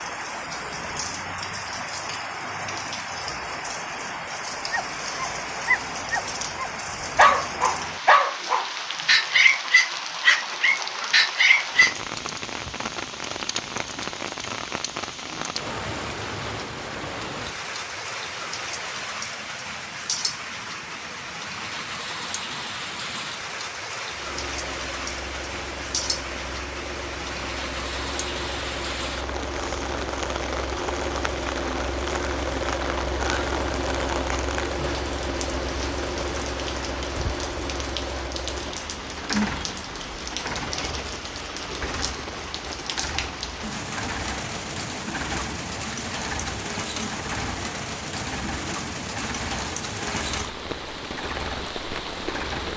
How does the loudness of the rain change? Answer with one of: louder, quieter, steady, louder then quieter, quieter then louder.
steady.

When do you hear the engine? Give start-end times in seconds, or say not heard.
24.1-52.7.